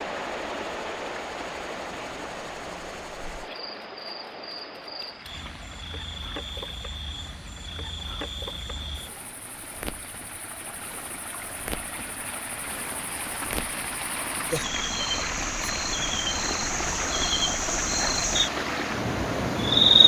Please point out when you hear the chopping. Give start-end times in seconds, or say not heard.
not heard.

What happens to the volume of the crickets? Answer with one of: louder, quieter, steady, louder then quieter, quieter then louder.
louder.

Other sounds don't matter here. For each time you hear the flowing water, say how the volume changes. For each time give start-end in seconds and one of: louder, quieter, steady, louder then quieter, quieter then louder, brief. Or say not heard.
0.0-20.0 quieter then louder.